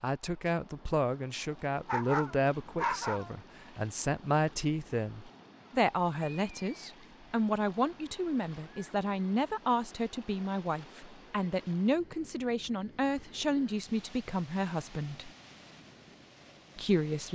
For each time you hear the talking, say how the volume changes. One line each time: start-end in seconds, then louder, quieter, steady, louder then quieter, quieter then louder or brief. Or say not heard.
0.0-15.3 steady
16.8-17.3 brief.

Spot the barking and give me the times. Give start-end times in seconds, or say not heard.
1.9-3.4.